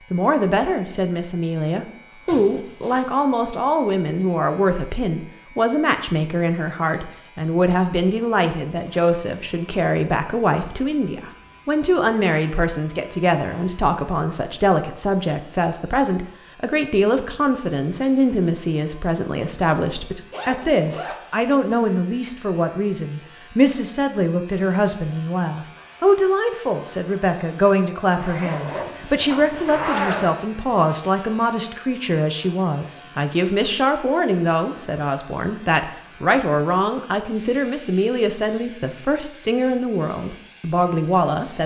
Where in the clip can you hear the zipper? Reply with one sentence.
The zipper can be heard from 2.2 to 3.1 s, from 20.3 to 21.2 s and from 28.1 to 30.4 s.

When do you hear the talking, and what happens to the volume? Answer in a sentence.
The talking can be heard from 0.1 to 41.6 s, at a steady volume.